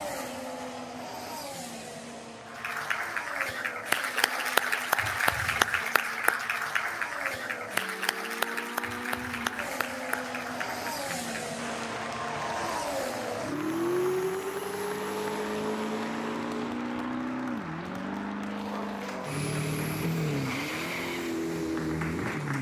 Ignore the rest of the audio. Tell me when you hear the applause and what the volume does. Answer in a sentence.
You can hear the applause from 2.5 to 22.5 s, getting quieter.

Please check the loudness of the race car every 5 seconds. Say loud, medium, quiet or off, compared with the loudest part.
medium, medium, loud, loud, loud.